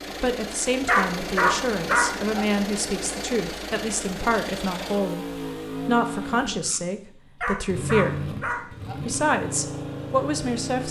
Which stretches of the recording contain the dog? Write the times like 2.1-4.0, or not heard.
0.8-2.5, 7.4-8.9.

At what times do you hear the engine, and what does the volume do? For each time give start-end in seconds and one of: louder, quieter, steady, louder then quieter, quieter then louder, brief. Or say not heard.
0.0-10.8 steady.